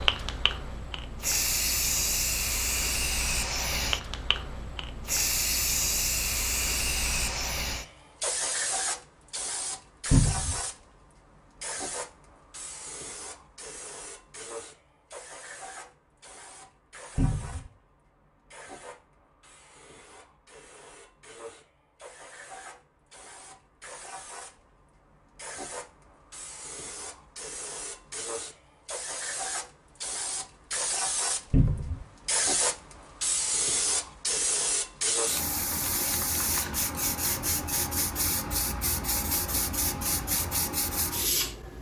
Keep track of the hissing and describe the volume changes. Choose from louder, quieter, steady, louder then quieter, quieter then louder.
quieter then louder.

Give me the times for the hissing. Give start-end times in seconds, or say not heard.
0.0-41.7.